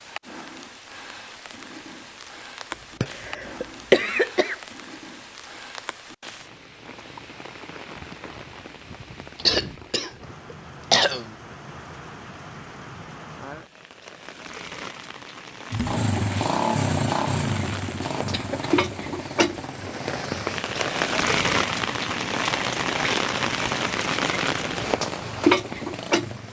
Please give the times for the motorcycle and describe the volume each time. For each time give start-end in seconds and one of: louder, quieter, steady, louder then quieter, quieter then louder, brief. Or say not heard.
15.7-26.4 quieter.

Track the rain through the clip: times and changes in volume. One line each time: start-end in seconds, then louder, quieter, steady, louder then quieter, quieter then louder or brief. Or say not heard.
0.0-26.4 louder.